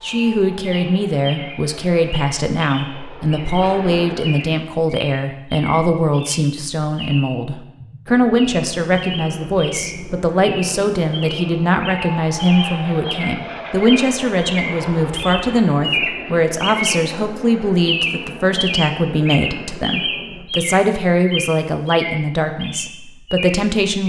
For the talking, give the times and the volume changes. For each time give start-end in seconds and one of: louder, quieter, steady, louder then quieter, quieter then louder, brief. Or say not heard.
0.0-24.0 steady.